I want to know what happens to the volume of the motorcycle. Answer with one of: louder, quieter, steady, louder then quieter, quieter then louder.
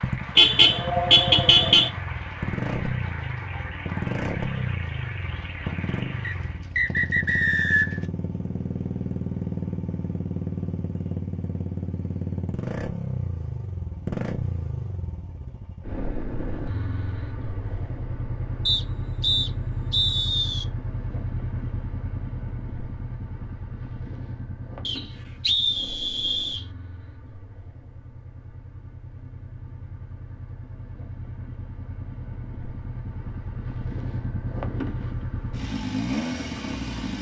quieter then louder.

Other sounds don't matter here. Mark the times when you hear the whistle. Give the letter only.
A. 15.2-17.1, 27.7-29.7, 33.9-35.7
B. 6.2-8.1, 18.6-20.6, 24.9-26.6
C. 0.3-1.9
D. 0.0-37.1
B.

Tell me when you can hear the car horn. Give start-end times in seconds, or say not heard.
0.3-1.9.